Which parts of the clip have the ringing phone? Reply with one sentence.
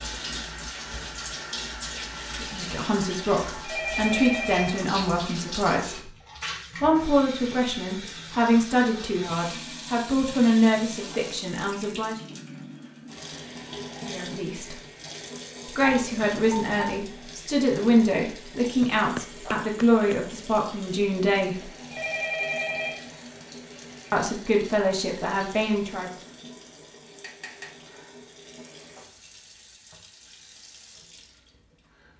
You can hear the ringing phone from 3.6 to 4.8 s, from 15.8 to 17.1 s and from 21.9 to 23.1 s.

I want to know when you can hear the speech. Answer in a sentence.
You can hear the speech from 2.4 to 6.1 s, from 6.8 to 12.2 s, from 14.1 to 14.8 s, from 15.7 to 21.6 s and from 24.1 to 26.1 s.